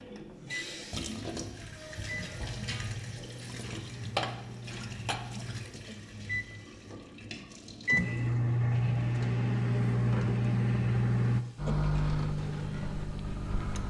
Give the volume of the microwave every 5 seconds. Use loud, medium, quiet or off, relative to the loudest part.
quiet, loud, loud.